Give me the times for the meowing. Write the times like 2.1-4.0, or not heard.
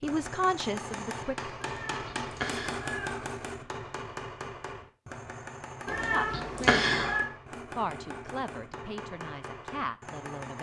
1.6-3.2, 5.8-7.2.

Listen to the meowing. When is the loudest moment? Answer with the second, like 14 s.
7 s.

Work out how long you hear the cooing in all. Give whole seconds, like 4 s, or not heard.
not heard.